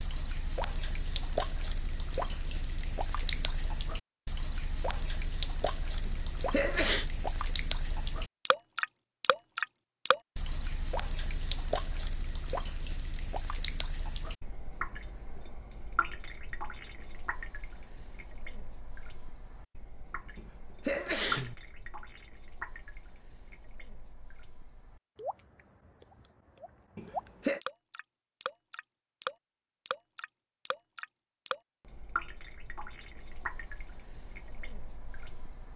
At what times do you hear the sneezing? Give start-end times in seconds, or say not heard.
6.0-7.1, 20.4-21.6, 26.9-27.6.